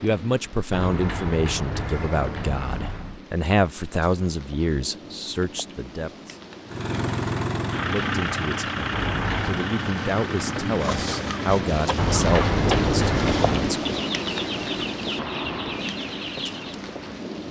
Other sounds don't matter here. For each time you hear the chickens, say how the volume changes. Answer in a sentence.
You can hear the chickens from 10.8 to 16.8 s, at a steady volume.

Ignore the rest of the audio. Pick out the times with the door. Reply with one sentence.
The door can be heard from 0.7 to 3.2 s, from 8.9 to 9.7 s and from 11.9 to 13.8 s.